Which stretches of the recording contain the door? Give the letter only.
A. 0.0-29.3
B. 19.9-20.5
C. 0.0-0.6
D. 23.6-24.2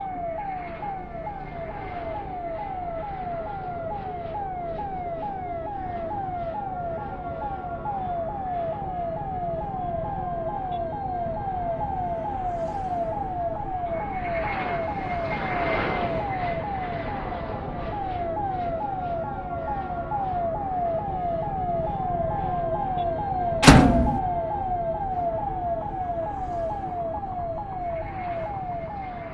D.